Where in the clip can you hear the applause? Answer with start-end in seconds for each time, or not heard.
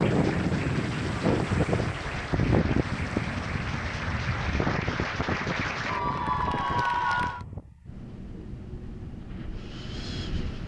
0.0-7.5.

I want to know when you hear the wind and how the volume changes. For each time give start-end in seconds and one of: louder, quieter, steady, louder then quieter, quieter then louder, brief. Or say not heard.
0.0-10.6 quieter.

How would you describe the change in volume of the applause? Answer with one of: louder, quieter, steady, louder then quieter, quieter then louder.
louder.